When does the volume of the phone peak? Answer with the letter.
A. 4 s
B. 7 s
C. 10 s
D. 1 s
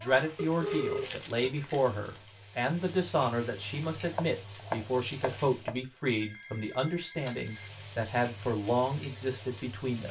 D.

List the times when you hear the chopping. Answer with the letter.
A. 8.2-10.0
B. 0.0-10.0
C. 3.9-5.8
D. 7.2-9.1
C.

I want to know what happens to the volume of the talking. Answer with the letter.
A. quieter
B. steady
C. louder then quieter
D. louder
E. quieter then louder
B.